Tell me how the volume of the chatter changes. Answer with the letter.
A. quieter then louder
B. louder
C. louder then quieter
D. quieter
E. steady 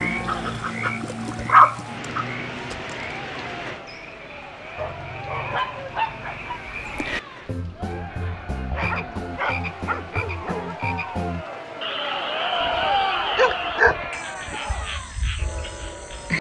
B.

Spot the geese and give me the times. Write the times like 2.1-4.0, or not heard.
not heard.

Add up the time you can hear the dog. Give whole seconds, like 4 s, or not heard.
8 s.